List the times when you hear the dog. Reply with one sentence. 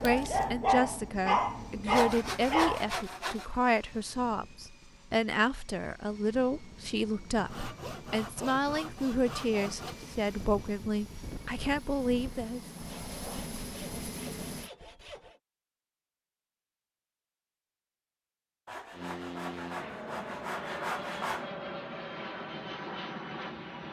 You can hear the dog from 0.0 to 2.9 s.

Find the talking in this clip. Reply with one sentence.
You can hear the talking from 0.0 to 12.6 s.